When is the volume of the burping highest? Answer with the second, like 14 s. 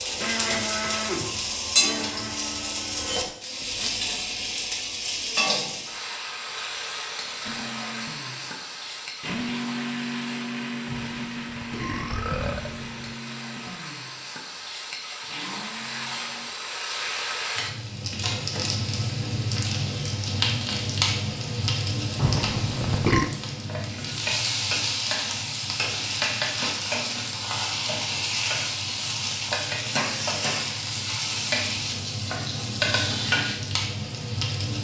23 s.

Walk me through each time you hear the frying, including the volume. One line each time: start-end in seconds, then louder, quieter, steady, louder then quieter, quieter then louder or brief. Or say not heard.
0.0-34.8 quieter then louder.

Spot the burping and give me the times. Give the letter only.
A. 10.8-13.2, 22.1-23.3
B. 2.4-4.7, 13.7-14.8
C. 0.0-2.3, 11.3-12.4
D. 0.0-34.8
A.